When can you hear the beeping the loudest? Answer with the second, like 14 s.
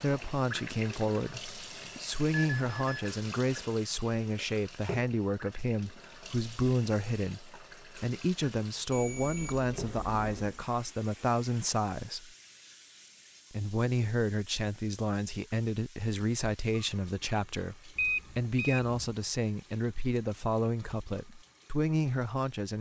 18 s.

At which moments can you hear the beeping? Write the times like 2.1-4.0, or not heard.
2.3-3.1, 8.9-10.6, 17.9-18.9.